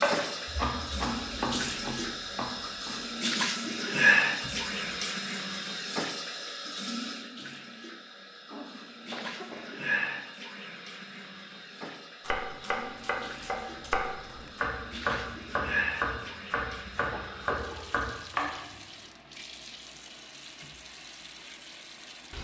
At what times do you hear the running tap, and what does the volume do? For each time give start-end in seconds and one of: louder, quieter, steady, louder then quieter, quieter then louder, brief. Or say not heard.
0.0-22.3 quieter.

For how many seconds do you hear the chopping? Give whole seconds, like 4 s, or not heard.
10 s.